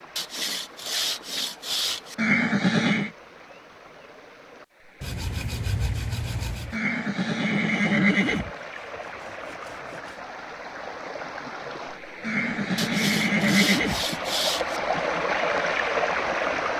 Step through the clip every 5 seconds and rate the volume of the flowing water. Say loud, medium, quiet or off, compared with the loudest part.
quiet, quiet, medium, loud.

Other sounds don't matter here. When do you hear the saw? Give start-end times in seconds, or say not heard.
0.1-2.1, 5.0-6.8, 8.6-10.2, 12.8-14.8.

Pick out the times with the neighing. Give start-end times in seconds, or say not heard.
2.1-3.1, 6.7-8.5, 12.2-14.1.